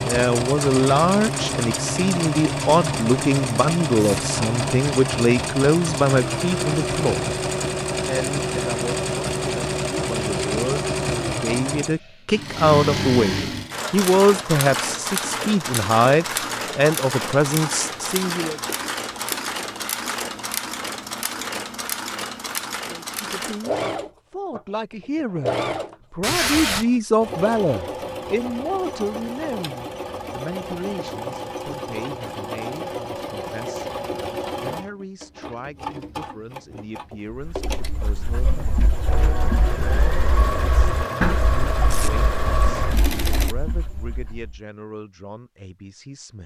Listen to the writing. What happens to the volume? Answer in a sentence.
The volume of the writing goes up, then down.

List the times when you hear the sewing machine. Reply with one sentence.
You can hear the sewing machine from 0.0 to 43.5 s.